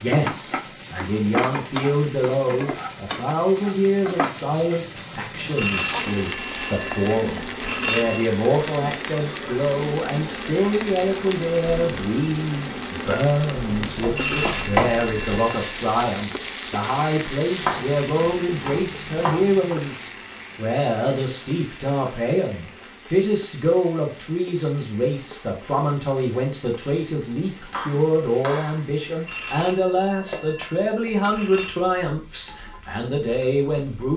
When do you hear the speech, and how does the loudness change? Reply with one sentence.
The speech can be heard from 0.0 to 34.1 s, at a steady volume.